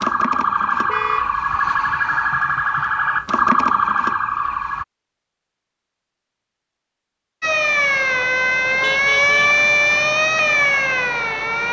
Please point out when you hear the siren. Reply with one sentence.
The siren can be heard from 0.0 to 4.8 s and from 7.4 to 11.6 s.